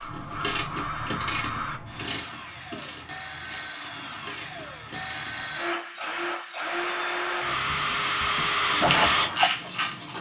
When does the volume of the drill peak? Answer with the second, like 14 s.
9 s.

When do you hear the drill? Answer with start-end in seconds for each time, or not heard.
0.0-10.1.